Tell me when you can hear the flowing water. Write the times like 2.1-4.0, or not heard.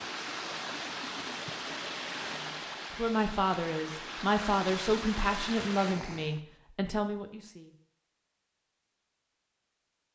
0.0-6.4.